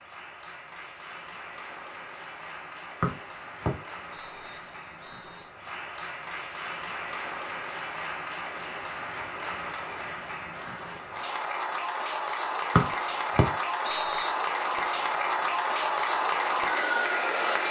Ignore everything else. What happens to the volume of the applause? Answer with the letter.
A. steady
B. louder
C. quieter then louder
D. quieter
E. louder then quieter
B.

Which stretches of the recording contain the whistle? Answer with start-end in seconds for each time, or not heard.
3.0-5.5, 12.8-14.3.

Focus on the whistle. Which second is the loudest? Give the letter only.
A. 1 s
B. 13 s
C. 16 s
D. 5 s
B.